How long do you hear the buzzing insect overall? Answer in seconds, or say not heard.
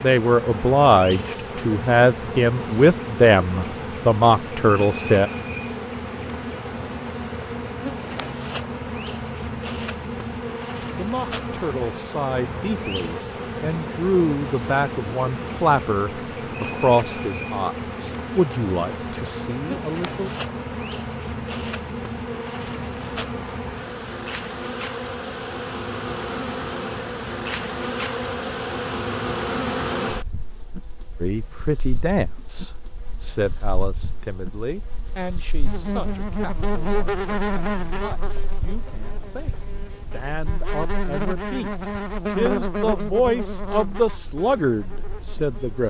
46 s.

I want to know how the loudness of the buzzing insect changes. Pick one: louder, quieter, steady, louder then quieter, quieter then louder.
steady.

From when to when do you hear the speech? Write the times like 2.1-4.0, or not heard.
0.0-5.3, 10.9-20.3, 31.2-45.8.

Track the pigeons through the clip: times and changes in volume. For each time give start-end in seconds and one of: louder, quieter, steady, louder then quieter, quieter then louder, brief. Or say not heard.
not heard.